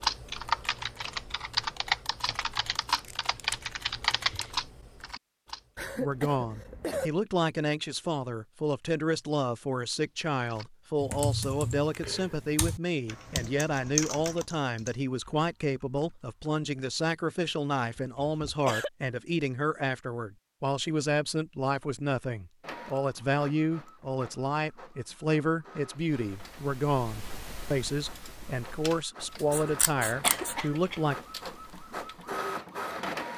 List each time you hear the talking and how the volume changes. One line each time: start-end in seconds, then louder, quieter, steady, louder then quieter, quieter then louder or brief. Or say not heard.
6.0-31.1 steady.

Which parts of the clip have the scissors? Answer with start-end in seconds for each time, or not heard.
2.9-4.5, 29.4-30.6.